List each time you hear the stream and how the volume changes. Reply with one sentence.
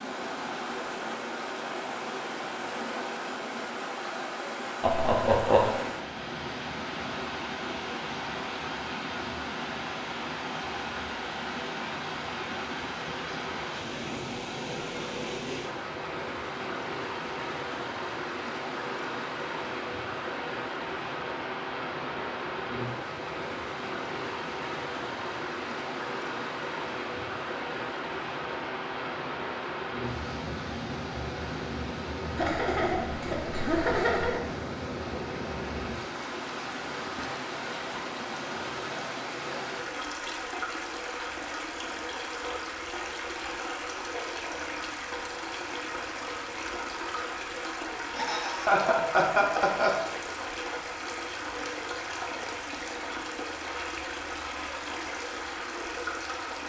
The stream can be heard from 0.0 to 56.6 s, at a steady volume.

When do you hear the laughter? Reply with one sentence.
The laughter can be heard from 4.8 to 5.8 s, from 32.4 to 34.4 s and from 48.1 to 49.9 s.